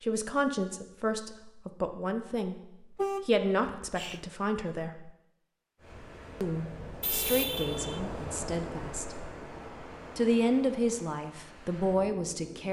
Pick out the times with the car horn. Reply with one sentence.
You can hear the car horn from 3.0 to 4.2 s and from 7.0 to 8.0 s.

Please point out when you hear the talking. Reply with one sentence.
The talking can be heard from 0.0 to 5.1 s, from 6.4 to 9.2 s and from 10.2 to 12.6 s.